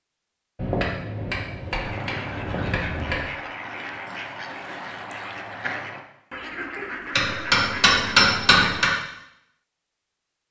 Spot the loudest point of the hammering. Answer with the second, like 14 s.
8 s.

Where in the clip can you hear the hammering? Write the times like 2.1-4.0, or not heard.
0.6-3.2, 7.2-8.9.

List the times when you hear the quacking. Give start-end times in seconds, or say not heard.
1.8-8.9.